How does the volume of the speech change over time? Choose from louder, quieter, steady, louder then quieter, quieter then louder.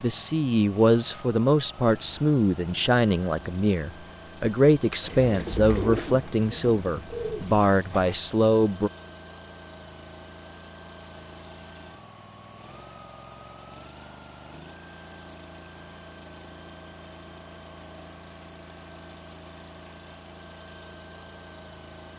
steady.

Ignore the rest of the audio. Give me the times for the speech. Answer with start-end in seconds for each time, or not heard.
0.0-8.9.